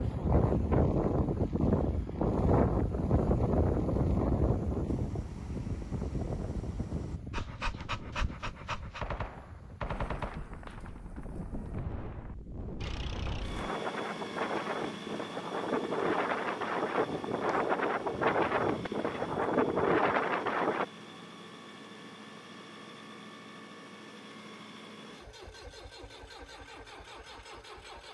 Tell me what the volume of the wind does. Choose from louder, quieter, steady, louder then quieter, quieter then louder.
quieter then louder.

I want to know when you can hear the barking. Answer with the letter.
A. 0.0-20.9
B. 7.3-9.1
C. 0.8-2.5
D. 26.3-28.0
B.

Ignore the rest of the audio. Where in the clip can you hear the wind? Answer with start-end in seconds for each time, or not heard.
0.0-20.9.